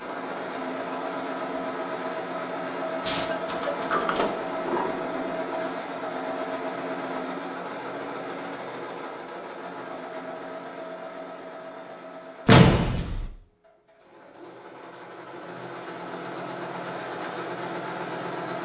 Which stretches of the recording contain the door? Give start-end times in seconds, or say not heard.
3.5-5.3, 12.4-13.3.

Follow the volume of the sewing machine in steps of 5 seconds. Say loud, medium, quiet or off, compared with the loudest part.
loud, loud, medium, loud.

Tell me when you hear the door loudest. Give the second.
13 s.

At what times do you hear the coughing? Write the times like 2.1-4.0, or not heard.
3.0-4.0.